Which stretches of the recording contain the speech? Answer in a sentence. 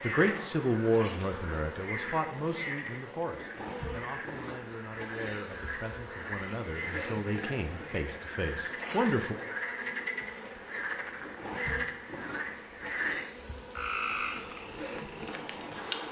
You can hear the speech from 0.0 to 9.3 s.